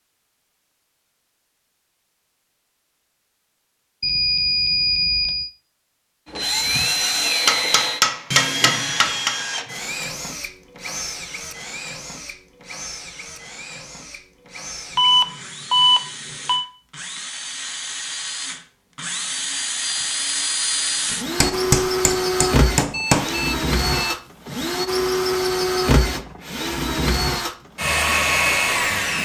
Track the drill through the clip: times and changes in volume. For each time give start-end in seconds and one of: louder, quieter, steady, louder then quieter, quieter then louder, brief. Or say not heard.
6.2-29.1 quieter then louder.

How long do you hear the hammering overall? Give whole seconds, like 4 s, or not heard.
4 s.